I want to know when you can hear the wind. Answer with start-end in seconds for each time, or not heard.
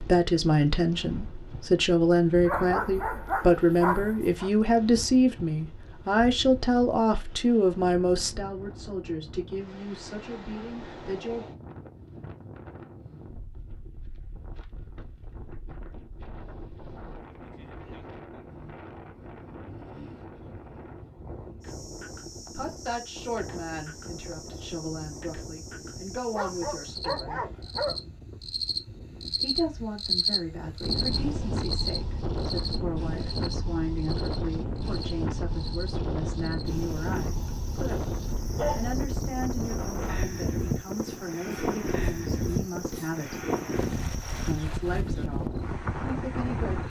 0.0-46.8.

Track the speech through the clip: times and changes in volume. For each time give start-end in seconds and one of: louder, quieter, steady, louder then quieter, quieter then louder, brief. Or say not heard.
0.0-11.4 quieter
22.6-27.4 quieter then louder
29.4-43.5 steady
44.4-46.8 brief.